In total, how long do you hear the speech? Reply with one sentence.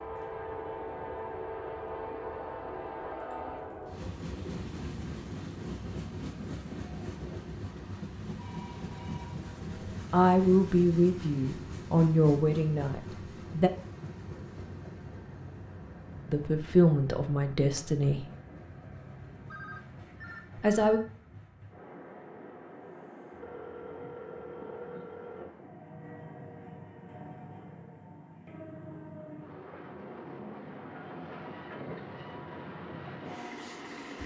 The speech can be heard for 6 seconds in total.